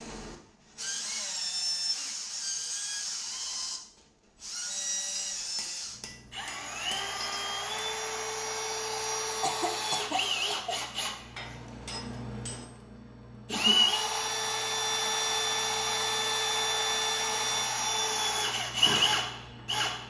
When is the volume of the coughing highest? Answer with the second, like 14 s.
10 s.